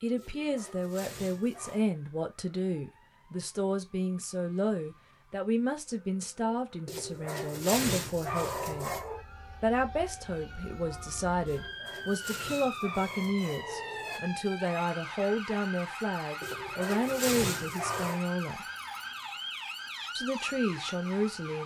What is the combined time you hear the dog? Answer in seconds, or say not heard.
9 s.